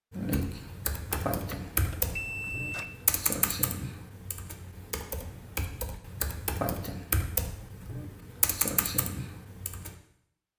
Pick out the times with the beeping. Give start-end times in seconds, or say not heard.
1.3-2.9.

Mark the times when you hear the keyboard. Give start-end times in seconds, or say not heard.
0.1-9.9.